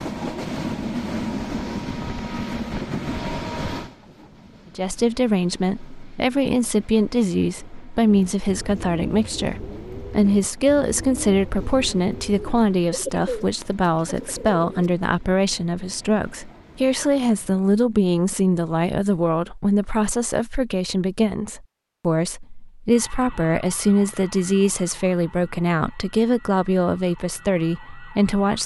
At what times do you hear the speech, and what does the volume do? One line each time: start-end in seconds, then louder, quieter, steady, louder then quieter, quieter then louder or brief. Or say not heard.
4.8-28.6 steady.